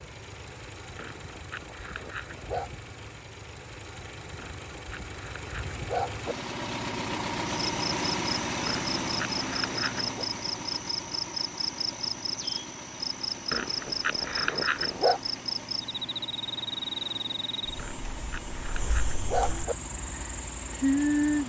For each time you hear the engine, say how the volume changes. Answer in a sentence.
The engine can be heard from 0.0 to 21.4 s, getting louder then quieter.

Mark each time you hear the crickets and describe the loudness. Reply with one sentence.
You can hear the crickets from 7.5 to 21.4 s, at a steady volume.